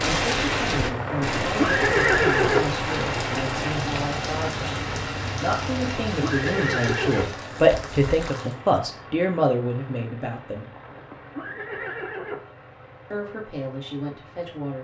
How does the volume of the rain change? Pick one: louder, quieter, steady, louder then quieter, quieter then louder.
quieter.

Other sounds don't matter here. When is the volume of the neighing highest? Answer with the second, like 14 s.
2 s.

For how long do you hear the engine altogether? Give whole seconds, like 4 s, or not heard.
15 s.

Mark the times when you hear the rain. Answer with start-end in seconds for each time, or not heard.
0.0-8.6.